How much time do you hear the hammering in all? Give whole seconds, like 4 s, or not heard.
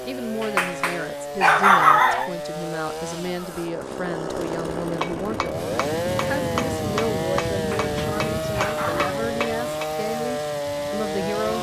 5 s.